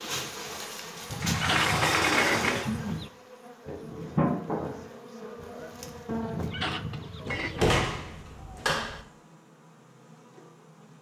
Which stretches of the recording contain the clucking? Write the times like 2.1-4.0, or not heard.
1.1-3.1, 6.2-7.8.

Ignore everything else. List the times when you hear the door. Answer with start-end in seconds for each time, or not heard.
1.2-2.7, 7.2-9.0.